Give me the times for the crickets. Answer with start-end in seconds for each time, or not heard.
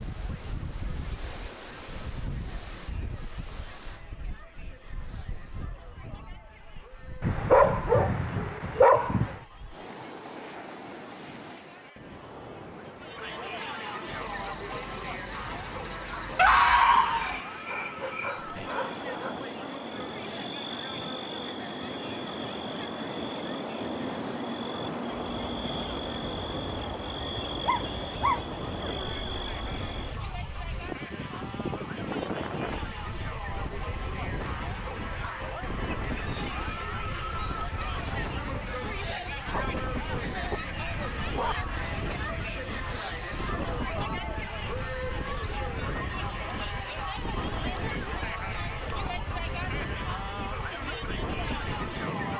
14.1-52.3.